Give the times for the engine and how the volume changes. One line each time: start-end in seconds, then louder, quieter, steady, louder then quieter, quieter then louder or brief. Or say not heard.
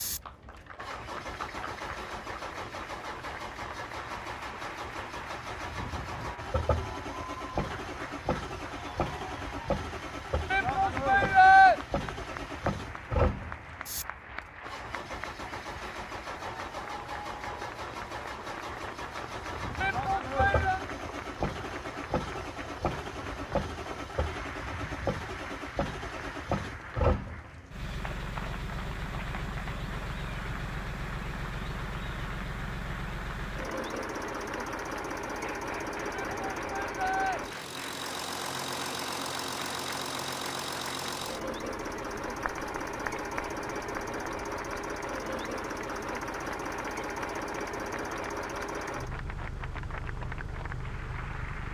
0.0-51.6 steady.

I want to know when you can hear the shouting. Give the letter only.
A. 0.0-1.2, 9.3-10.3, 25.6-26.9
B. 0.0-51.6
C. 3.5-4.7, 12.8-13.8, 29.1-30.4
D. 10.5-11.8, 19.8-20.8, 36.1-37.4
D.